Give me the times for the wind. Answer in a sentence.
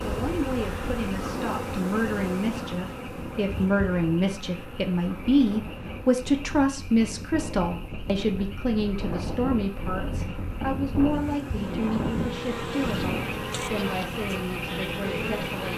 The wind can be heard from 0.1 to 13.5 s.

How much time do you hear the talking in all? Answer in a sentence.
You can hear the talking for 16 seconds altogether.